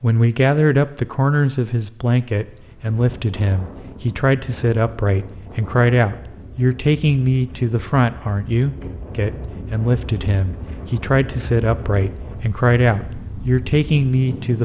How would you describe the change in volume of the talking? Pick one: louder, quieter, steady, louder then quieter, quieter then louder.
steady.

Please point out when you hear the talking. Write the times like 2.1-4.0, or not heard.
0.0-14.5.